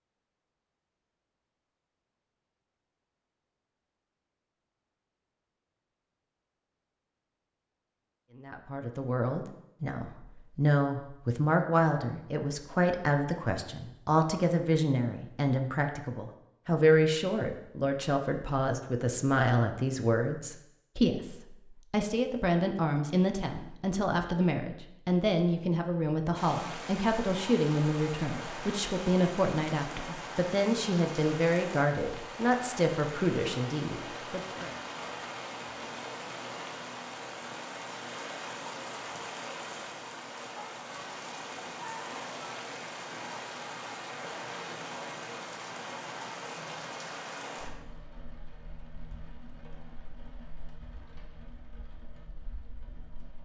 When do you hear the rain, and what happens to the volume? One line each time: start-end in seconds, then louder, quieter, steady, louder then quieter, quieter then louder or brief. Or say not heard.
26.4-53.4 quieter.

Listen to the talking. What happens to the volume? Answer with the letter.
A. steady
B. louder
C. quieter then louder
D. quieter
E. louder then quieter
A.